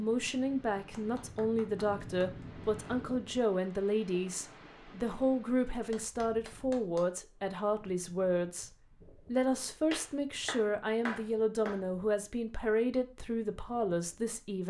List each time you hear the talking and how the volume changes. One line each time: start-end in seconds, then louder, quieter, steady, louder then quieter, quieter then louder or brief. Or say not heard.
0.0-14.6 steady.